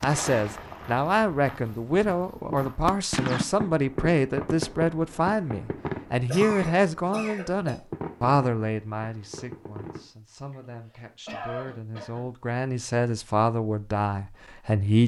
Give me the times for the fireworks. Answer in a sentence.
The fireworks can be heard from 0.0 to 10.1 s.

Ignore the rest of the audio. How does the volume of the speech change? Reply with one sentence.
The loudness of the speech goes down, then up.